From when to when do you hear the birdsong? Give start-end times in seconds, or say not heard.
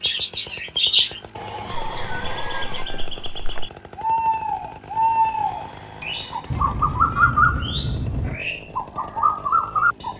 0.0-10.1.